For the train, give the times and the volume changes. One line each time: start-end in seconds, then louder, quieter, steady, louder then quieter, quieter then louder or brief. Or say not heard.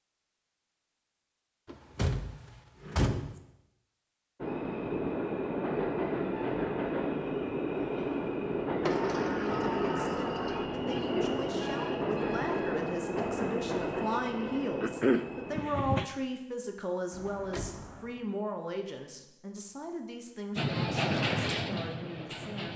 4.4-16.1 steady
20.6-22.7 brief.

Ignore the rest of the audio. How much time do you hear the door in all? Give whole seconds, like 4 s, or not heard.
5 s.